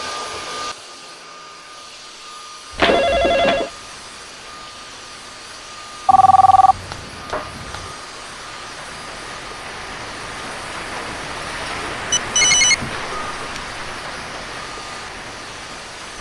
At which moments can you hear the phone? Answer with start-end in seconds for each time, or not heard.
2.8-3.7, 6.0-7.8, 12.1-13.9.